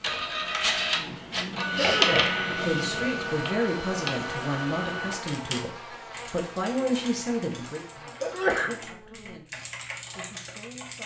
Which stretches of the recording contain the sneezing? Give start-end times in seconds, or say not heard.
1.8-2.6, 8.2-8.8.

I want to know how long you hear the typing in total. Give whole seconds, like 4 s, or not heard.
6 s.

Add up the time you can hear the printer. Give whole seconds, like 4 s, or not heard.
5 s.